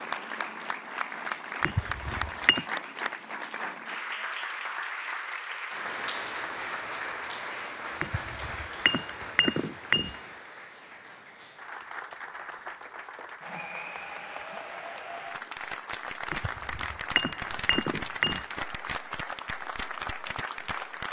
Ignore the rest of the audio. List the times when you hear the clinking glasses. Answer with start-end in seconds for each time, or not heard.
1.6-2.6, 8.0-10.2, 16.3-18.4.